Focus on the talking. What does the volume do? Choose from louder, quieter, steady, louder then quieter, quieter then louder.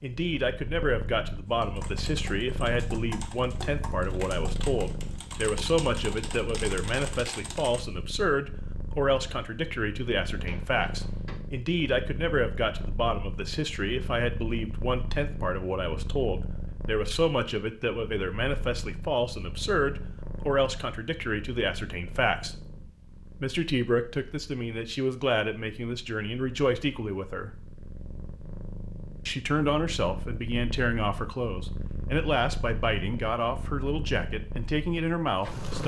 steady.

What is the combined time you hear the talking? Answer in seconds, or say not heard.
33 s.